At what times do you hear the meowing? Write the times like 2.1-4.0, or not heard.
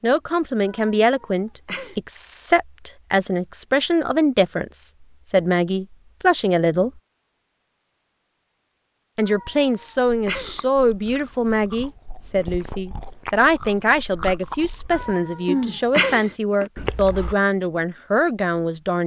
0.7-1.9, 9.2-10.7, 14.9-16.4.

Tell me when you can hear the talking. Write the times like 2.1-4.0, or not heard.
0.0-6.9, 9.2-19.0.